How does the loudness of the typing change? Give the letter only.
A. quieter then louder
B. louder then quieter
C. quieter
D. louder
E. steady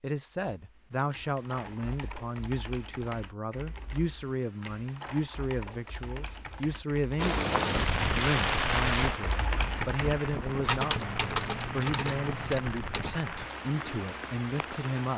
D.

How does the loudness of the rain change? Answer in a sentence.
The loudness of the rain goes down.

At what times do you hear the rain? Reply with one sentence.
The rain can be heard from 7.2 to 15.1 s.